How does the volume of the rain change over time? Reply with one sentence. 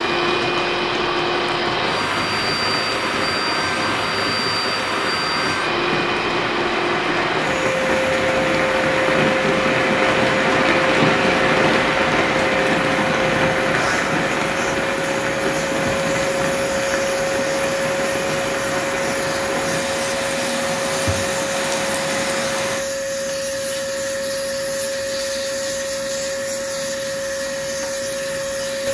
The volume of the rain goes up, then down.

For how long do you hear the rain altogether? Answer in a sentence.
You can hear the rain for 23 seconds altogether.